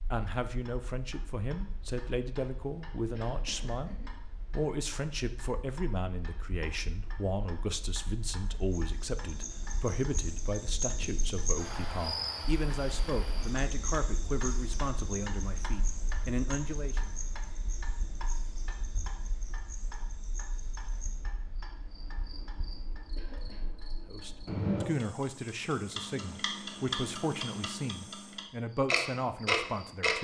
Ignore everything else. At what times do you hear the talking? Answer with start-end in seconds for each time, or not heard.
0.1-17.1, 24.1-30.1.